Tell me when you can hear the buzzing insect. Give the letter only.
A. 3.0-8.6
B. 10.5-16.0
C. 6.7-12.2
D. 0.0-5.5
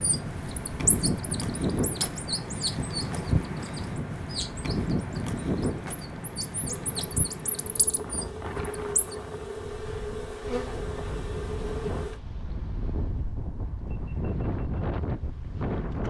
C.